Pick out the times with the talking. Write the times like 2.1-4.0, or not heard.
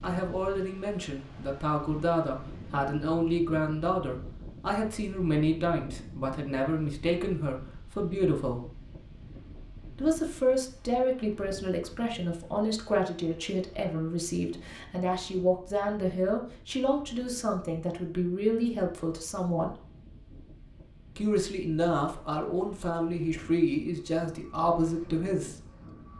0.0-8.6, 9.9-19.7, 21.1-25.6.